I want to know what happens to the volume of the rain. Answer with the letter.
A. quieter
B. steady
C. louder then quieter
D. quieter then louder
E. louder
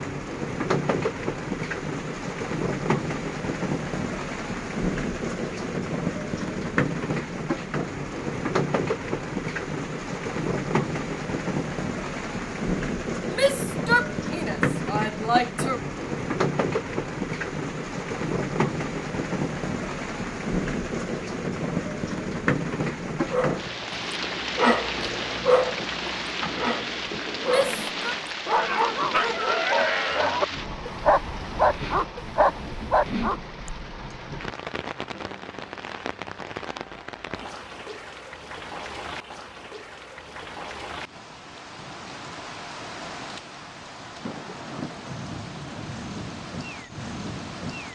A.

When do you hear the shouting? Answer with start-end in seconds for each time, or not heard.
13.3-15.8, 27.4-28.1.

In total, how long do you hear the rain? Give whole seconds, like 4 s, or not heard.
48 s.